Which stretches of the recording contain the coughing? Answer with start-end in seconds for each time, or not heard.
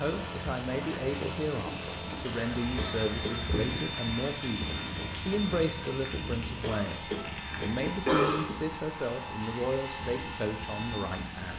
2.8-3.5, 6.6-8.7.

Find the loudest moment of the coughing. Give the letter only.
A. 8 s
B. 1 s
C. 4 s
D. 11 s
A.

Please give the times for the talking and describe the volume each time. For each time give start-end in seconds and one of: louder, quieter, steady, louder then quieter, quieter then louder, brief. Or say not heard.
0.0-11.5 steady.